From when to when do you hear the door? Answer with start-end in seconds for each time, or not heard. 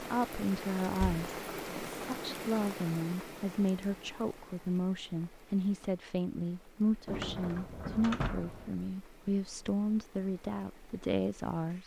0.8-1.2, 7.0-8.8.